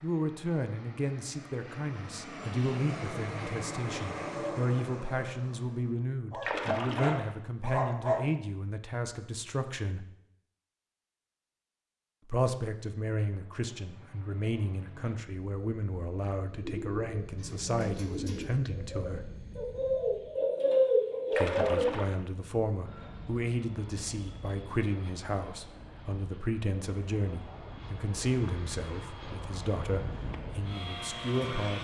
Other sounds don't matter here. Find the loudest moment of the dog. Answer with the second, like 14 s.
8 s.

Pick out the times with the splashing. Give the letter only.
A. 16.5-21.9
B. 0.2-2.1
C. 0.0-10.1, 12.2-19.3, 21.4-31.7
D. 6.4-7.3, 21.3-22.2
D.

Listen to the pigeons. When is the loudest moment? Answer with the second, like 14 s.
21 s.